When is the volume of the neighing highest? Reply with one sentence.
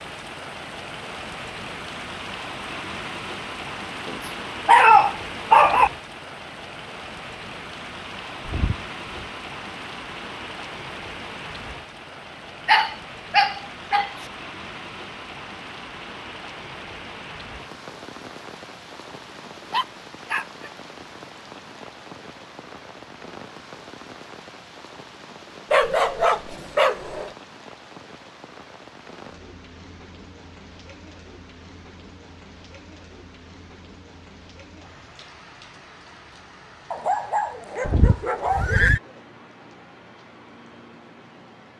The loudest moment of the neighing is at 39 seconds.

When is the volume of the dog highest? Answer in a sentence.
The loudest moment of the dog is at 5 seconds.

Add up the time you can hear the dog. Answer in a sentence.
You can hear the dog for 8 seconds altogether.